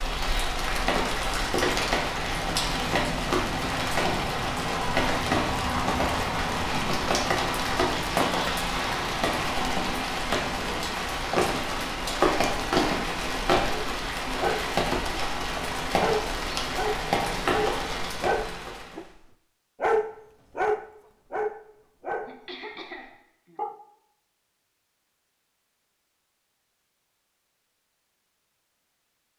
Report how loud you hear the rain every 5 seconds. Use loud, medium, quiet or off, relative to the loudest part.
loud, loud, loud, loud, off, off.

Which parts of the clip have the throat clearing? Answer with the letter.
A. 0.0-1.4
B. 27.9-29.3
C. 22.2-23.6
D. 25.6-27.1
C.